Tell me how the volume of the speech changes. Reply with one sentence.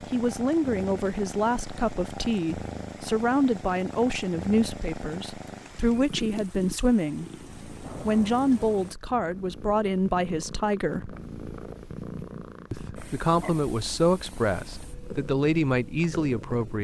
The loudness of the speech stays about the same.